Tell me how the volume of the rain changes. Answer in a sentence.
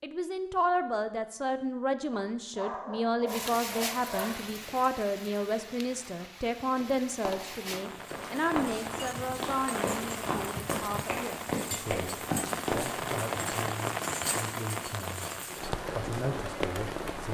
The loudness of the rain goes up.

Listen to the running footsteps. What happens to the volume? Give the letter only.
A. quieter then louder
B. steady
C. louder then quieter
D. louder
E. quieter
D.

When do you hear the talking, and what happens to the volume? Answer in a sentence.
The talking can be heard from 0.0 to 17.2 s, getting quieter.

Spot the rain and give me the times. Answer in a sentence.
The rain can be heard from 3.2 to 17.2 s.